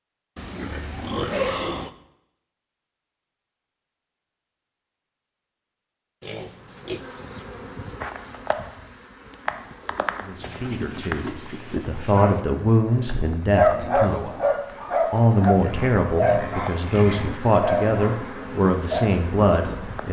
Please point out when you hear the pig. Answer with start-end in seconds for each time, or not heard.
0.3-1.9, 6.2-7.5, 10.4-12.4, 15.6-17.4.